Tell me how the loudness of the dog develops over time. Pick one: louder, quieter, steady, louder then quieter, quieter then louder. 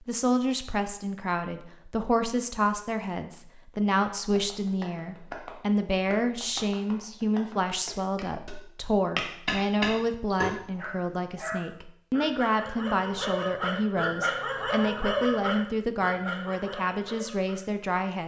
louder then quieter.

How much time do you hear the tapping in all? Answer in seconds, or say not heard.
6 s.